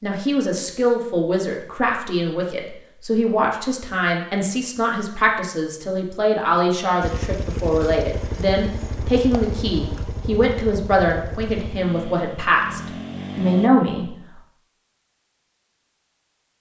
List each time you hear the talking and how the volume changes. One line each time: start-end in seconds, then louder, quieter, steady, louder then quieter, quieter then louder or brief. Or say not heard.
0.0-14.2 steady.